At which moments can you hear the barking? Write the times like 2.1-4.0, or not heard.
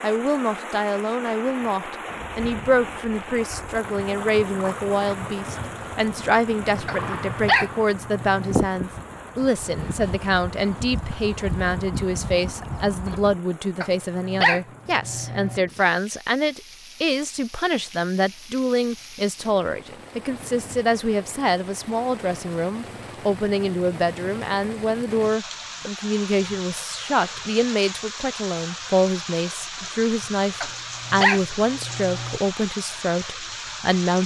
6.8-8.7, 13.8-15.6, 30.6-32.4.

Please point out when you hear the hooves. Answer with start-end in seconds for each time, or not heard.
2.1-13.3.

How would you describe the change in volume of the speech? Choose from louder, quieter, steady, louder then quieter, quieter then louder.
steady.